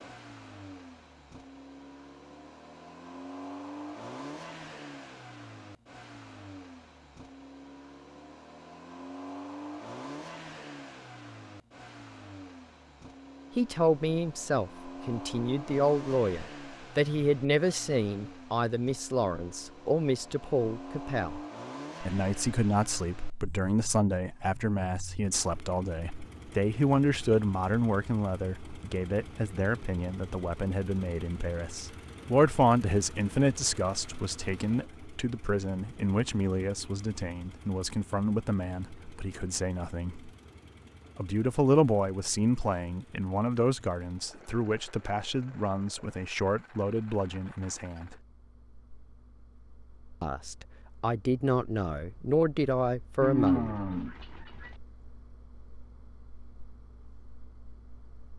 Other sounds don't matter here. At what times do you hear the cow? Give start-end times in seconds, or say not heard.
53.2-54.8.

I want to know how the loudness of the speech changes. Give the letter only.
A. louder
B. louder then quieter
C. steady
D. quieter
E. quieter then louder
C.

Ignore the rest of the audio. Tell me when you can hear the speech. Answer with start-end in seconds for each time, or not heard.
13.6-21.4, 22.0-40.3, 41.1-48.1, 50.2-53.8.